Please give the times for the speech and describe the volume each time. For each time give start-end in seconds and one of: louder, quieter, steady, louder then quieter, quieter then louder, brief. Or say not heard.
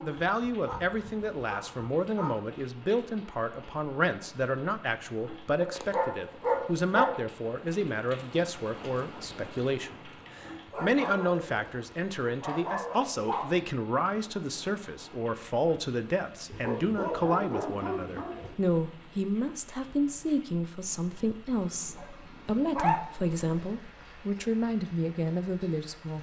0.0-26.1 steady.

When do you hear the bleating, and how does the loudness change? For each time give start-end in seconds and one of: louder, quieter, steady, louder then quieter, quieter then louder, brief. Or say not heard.
not heard.